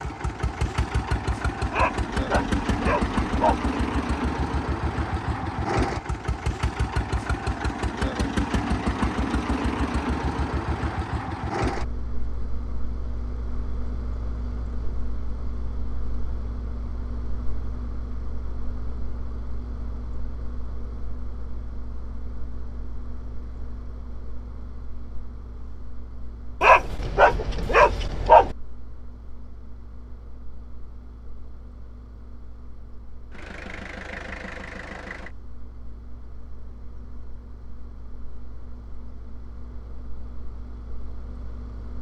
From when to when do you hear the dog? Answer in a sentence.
The dog can be heard from 1.7 to 3.6 s and from 26.6 to 28.6 s.